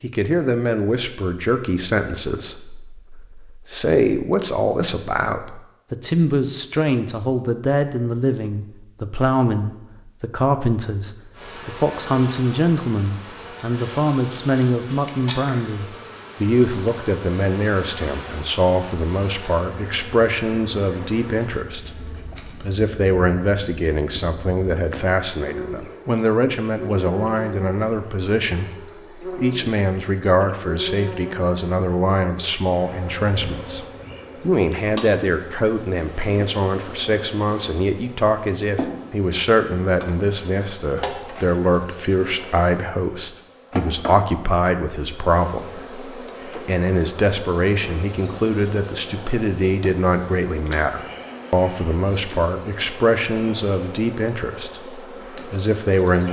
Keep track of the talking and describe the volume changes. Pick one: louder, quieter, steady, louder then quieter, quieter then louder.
steady.